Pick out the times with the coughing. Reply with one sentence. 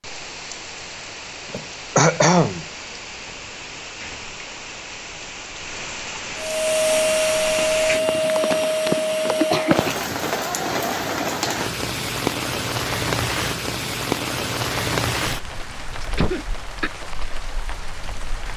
The coughing can be heard from 1.5 to 2.6 s, from 9.3 to 10.0 s and from 16.1 to 16.9 s.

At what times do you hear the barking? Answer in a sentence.
You can't hear the barking here.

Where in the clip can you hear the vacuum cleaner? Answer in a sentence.
The vacuum cleaner can be heard from 6.3 to 9.8 s.